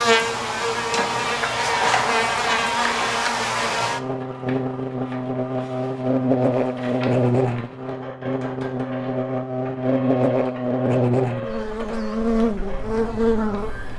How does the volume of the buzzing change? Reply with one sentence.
The volume of the buzzing stays about the same.